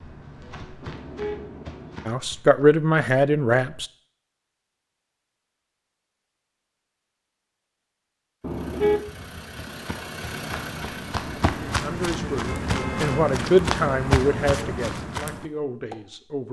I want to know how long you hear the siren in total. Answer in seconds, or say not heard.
not heard.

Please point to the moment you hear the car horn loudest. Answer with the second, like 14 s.
9 s.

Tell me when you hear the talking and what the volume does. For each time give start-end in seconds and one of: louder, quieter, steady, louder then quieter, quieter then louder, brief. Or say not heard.
2.0-3.9 brief
11.8-16.4 louder then quieter.